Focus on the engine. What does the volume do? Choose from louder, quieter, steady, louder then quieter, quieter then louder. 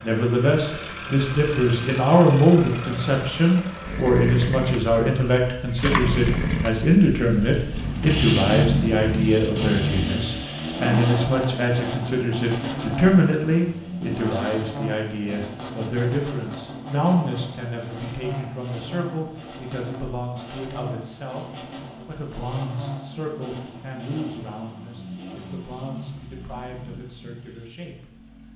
louder then quieter.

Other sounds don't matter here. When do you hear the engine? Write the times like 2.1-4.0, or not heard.
0.0-28.5.